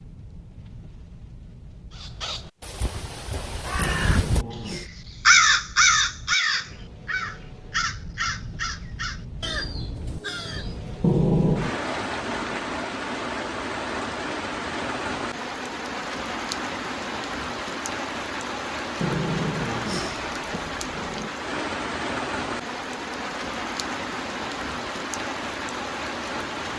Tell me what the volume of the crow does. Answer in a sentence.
The loudness of the crow goes up, then down.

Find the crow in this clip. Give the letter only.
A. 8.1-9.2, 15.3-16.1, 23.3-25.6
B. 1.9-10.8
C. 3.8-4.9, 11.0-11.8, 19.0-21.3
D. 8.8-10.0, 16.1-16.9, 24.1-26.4
B.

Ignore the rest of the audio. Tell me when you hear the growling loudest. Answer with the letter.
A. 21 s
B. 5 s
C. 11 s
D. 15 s
C.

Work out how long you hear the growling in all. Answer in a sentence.
The growling can be heard for 4 seconds in total.